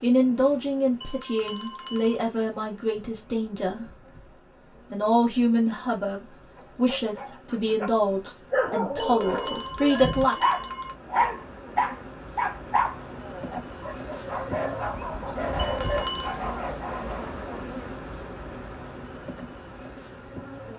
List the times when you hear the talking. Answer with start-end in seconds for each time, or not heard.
0.0-4.0, 4.9-10.3.